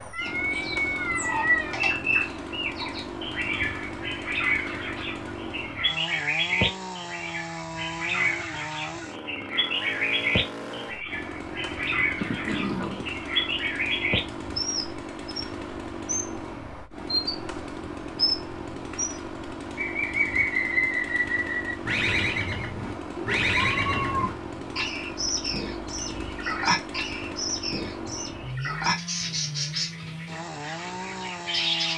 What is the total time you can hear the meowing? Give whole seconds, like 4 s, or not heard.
4 s.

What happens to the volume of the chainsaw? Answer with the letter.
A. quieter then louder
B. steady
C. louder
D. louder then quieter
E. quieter
B.